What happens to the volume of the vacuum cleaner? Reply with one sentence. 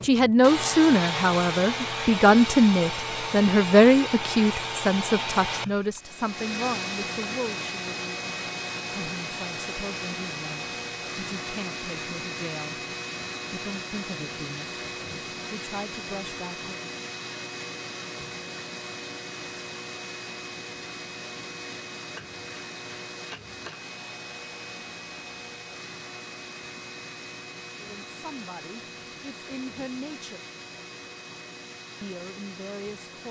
The volume of the vacuum cleaner goes down.